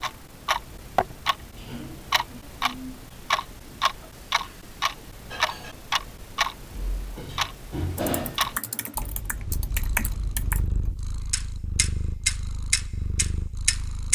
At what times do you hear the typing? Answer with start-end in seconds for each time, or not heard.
8.0-10.7.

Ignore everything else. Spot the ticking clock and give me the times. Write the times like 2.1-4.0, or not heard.
0.0-14.0.